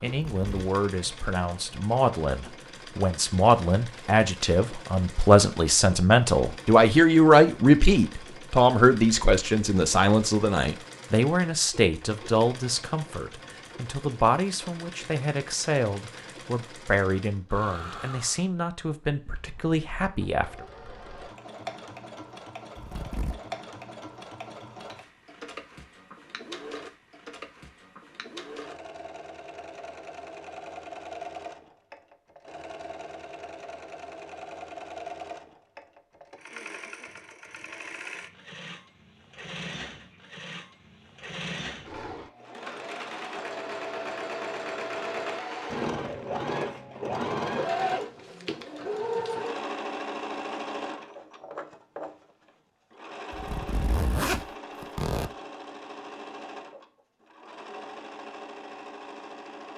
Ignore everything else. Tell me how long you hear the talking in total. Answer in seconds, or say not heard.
21 s.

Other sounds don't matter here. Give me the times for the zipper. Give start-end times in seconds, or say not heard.
0.1-0.7, 22.8-23.4, 53.3-55.3.